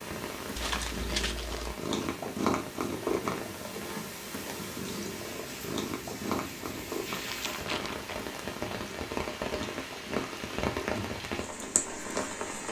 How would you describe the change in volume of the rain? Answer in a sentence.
The volume of the rain goes up.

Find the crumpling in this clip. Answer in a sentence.
The crumpling can be heard from 0.6 to 1.8 s and from 7.1 to 8.2 s.